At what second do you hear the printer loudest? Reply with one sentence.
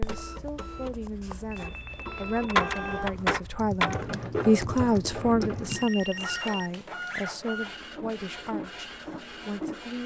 The loudest moment of the printer is at 3 seconds.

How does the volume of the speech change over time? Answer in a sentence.
The volume of the speech goes up, then down.